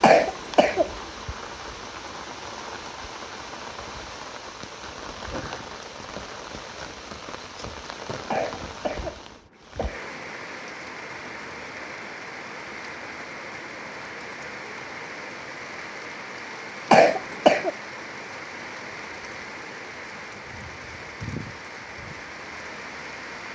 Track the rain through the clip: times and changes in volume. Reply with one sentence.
You can hear the rain from 0.0 to 23.5 s, at a steady volume.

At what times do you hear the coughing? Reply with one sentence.
You can hear the coughing from 0.0 to 0.9 s, from 8.3 to 10.1 s and from 16.9 to 17.7 s.